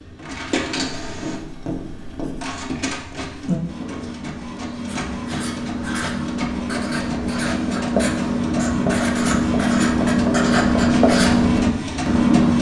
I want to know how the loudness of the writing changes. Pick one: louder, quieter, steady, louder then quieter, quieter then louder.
louder.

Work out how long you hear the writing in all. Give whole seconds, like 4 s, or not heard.
12 s.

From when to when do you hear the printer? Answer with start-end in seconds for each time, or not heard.
0.0-12.5.